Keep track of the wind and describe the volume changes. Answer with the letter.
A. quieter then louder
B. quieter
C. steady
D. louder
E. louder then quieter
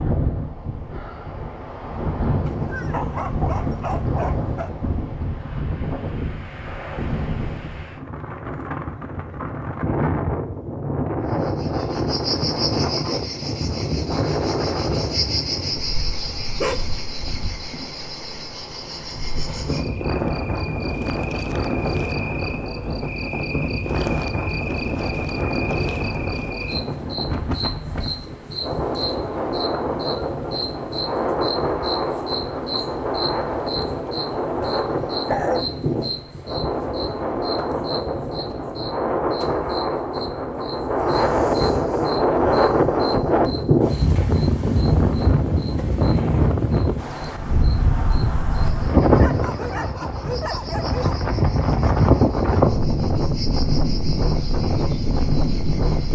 D.